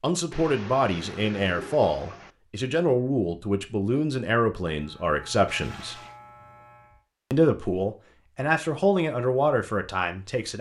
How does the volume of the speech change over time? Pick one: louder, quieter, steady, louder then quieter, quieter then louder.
steady.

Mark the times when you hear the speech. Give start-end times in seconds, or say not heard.
0.0-6.0, 7.3-10.5.